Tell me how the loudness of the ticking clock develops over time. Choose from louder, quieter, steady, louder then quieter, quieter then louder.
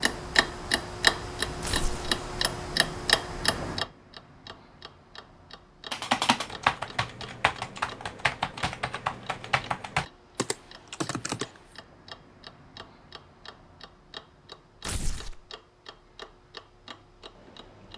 quieter.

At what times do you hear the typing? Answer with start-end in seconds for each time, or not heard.
5.9-11.5.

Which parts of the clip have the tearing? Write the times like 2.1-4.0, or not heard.
1.6-2.2, 14.8-15.4.